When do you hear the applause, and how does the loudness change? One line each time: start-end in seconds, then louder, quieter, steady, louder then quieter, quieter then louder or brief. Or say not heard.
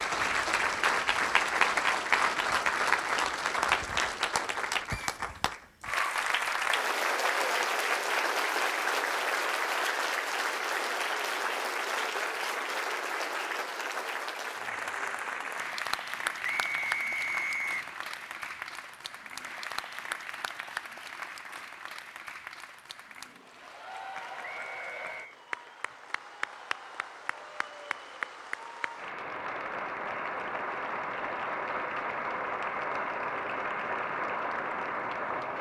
0.0-35.5 quieter then louder.